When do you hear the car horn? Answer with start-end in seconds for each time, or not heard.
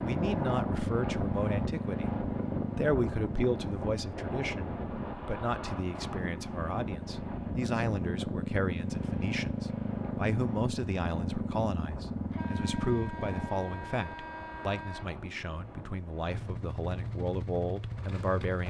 12.2-15.1.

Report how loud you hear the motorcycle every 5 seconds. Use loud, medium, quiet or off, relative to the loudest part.
loud, loud, loud, medium.